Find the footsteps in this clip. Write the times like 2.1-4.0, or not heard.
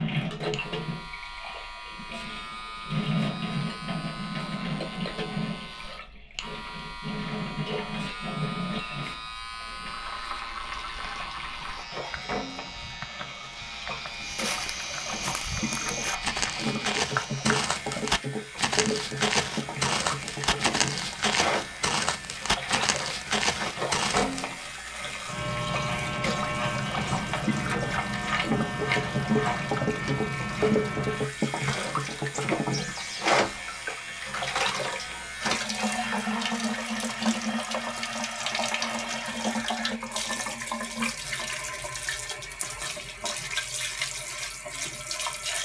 14.2-24.4.